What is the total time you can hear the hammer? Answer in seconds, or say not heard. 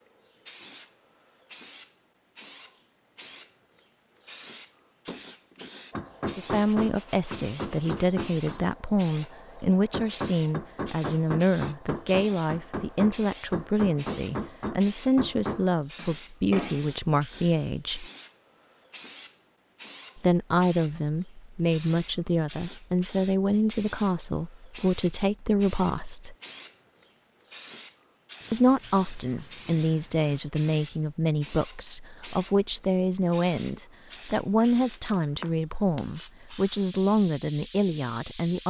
12 s.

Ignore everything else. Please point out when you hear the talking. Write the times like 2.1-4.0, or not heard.
6.3-18.1, 20.1-26.4, 28.5-38.6.